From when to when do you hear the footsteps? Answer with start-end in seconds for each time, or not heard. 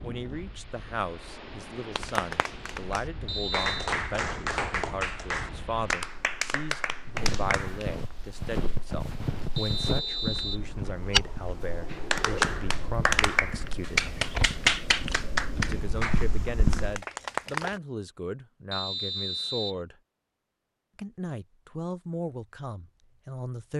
7.2-17.0.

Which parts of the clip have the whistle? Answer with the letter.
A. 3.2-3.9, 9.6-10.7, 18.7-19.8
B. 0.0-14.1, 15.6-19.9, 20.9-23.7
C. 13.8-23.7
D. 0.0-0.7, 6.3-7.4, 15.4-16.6
A.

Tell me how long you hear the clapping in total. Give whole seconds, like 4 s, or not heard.
12 s.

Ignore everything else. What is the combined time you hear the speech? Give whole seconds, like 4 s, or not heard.
21 s.